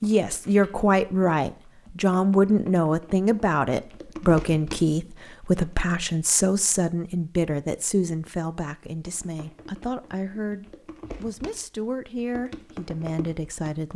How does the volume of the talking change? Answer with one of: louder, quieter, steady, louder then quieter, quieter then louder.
quieter.